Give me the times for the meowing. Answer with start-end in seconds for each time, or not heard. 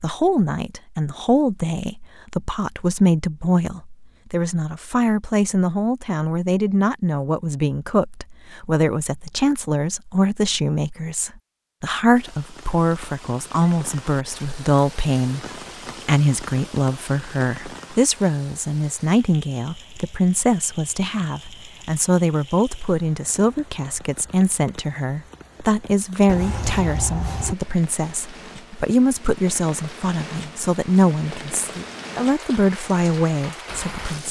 26.2-27.6.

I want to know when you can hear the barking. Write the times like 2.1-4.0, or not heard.
not heard.